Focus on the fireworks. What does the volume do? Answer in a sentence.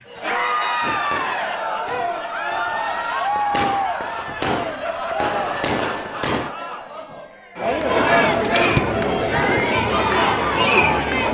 The loudness of the fireworks goes up.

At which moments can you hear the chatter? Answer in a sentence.
You can hear the chatter from 0.0 to 11.2 s.